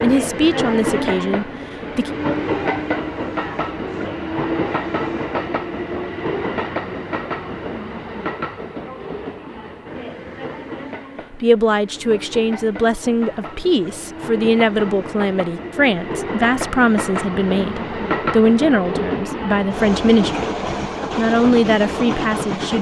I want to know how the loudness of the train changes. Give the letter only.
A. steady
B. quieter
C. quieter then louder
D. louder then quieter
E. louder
C.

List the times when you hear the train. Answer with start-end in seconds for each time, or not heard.
0.0-22.7.